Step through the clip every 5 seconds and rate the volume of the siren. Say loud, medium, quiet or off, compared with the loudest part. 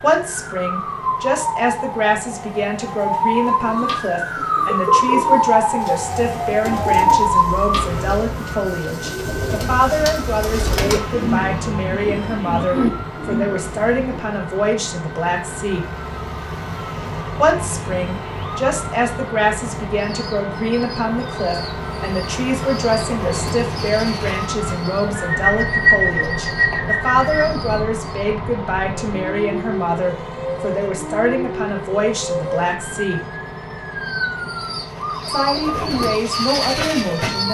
loud, loud, quiet, quiet, quiet, quiet, medium, medium.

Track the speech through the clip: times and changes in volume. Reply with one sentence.
You can hear the speech from 0.0 to 15.8 s, at a steady volume; from 17.4 to 33.2 s, at a steady volume; and briefly from 35.2 to 37.4 s.